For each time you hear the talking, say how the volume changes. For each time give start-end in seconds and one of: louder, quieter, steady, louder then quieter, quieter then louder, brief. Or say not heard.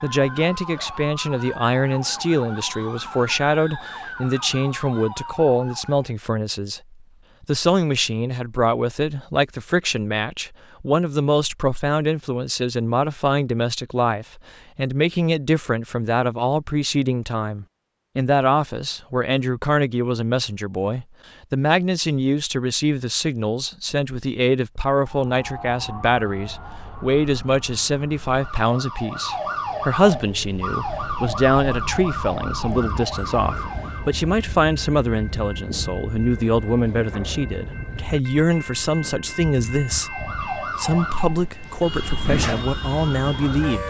0.0-6.8 steady
7.4-43.8 steady.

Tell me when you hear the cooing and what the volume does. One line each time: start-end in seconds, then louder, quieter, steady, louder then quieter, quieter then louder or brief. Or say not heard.
not heard.